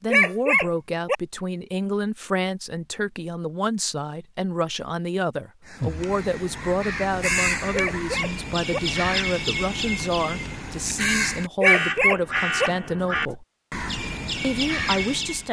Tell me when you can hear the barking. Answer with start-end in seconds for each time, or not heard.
0.1-1.1, 7.7-8.8, 11.6-12.7.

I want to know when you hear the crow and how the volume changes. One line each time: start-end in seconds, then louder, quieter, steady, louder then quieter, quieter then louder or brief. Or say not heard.
5.7-15.4 steady.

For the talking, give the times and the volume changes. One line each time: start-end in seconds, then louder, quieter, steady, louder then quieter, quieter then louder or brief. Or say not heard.
0.0-13.4 steady
14.4-15.4 brief.